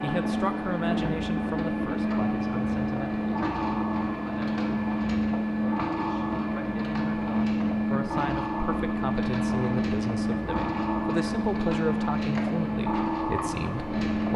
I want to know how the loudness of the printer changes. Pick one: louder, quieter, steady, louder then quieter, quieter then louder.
steady.